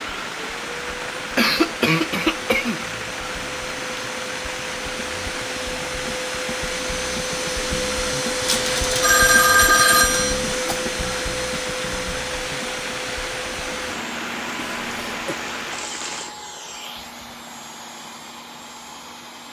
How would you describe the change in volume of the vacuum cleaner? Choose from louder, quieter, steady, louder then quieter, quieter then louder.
louder then quieter.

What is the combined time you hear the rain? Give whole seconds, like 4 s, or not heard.
16 s.